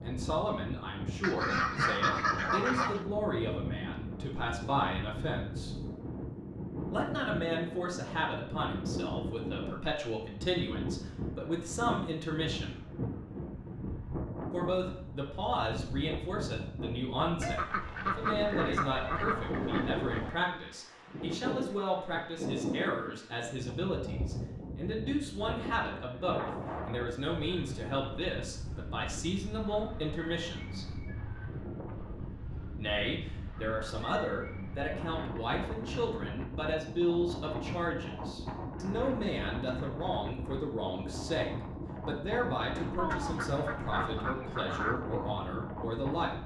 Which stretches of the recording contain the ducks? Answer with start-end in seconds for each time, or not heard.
1.2-3.0, 17.4-20.4, 43.0-45.0.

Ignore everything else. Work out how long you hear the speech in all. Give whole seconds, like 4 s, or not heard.
42 s.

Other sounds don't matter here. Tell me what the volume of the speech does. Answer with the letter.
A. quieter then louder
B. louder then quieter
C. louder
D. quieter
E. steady
E.